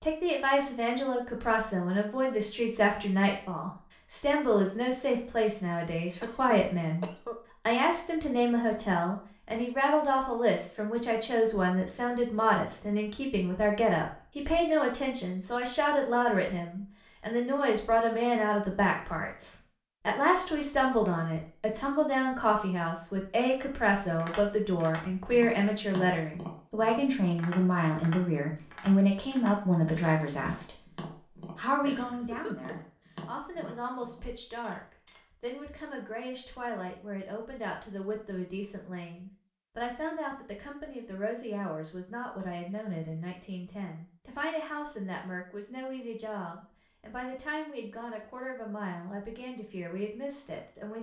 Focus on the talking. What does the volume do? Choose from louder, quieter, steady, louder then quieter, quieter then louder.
quieter.